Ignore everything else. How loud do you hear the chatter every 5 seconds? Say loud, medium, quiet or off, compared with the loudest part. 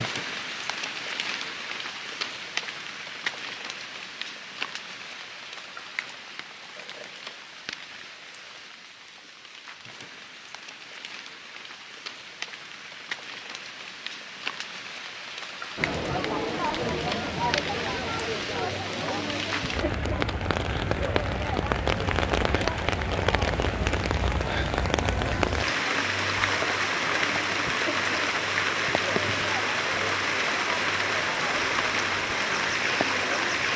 off, off, off, loud, medium, medium, medium.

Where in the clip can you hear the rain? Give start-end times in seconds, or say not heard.
0.0-33.7.